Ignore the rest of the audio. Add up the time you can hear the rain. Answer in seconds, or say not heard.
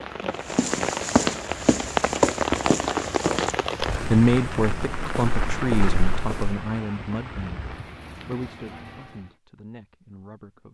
9 s.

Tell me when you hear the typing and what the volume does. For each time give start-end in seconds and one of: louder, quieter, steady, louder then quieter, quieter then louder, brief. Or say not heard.
not heard.